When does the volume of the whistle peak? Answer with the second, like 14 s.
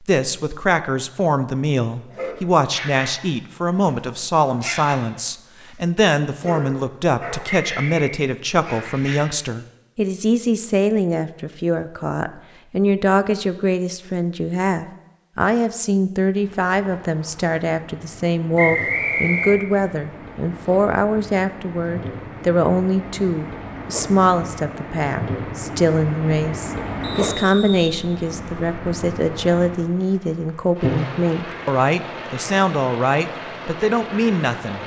19 s.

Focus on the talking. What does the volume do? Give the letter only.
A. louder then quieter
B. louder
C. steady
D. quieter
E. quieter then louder
C.